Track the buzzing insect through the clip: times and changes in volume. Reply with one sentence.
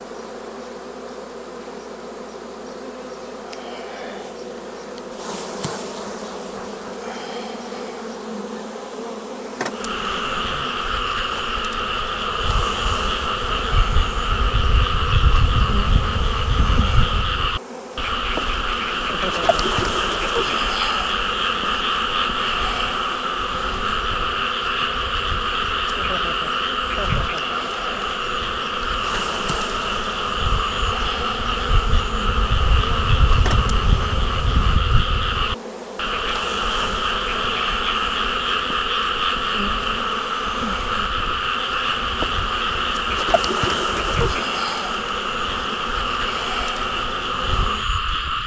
The buzzing insect can be heard from 0.0 to 48.4 s, at a steady volume.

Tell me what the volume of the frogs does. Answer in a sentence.
The volume of the frogs stays about the same.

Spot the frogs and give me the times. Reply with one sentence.
You can hear the frogs from 9.8 to 48.4 s.